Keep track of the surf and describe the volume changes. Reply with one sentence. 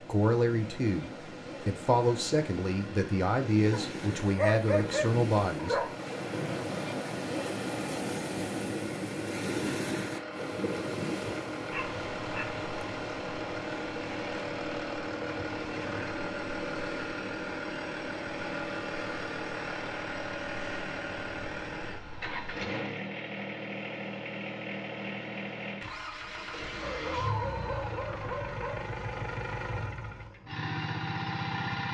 The loudness of the surf goes up, then down.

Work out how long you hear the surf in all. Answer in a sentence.
The surf can be heard for 23 seconds in total.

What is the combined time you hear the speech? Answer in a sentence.
You can hear the speech for 6 seconds altogether.